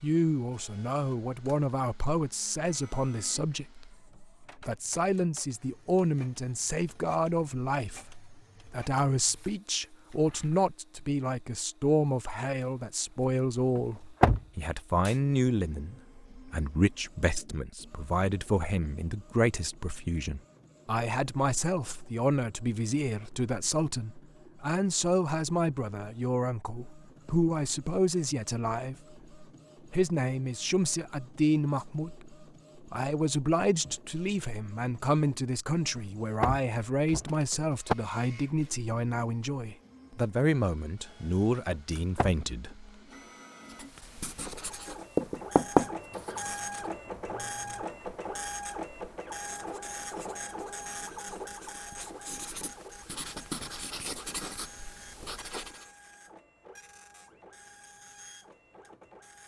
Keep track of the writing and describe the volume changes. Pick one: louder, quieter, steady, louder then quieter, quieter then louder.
quieter then louder.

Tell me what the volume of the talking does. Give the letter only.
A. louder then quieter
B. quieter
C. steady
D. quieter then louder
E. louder
C.